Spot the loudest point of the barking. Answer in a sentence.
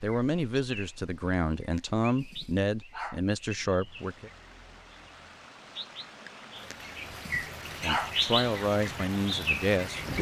The loudest moment of the barking is at 8 seconds.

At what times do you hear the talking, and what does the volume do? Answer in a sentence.
You can hear the talking from 0.0 to 4.3 s, at a steady volume; and briefly from 7.8 to 10.1 s.